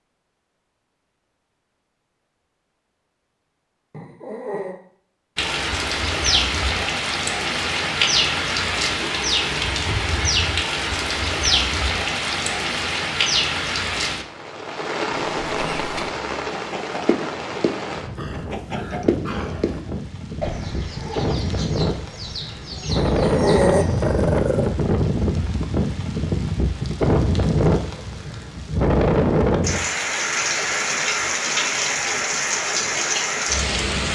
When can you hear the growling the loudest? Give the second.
24 s.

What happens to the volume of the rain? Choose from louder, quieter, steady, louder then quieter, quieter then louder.
quieter then louder.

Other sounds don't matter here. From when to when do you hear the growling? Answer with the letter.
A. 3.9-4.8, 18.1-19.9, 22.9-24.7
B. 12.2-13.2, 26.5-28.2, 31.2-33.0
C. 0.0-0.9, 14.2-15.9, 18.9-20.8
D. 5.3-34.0
A.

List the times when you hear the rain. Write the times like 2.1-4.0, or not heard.
5.3-34.0.